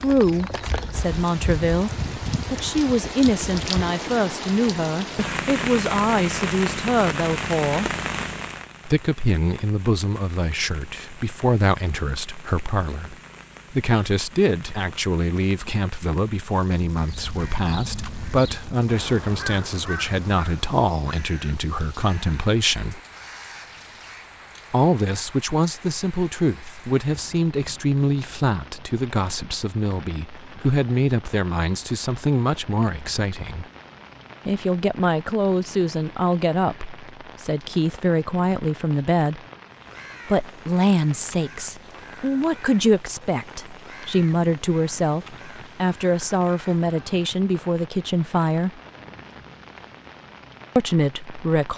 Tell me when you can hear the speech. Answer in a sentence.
You can hear the speech from 0.0 to 7.9 s, from 8.8 to 23.0 s, from 24.7 to 33.6 s, from 34.5 to 39.4 s, from 40.2 to 48.8 s and from 50.8 to 51.7 s.